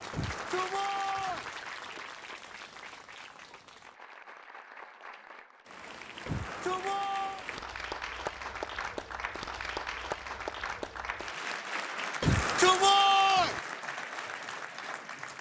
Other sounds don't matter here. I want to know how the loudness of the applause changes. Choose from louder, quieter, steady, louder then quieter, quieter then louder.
quieter then louder.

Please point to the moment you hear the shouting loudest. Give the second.
13 s.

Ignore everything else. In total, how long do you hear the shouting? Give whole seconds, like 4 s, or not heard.
4 s.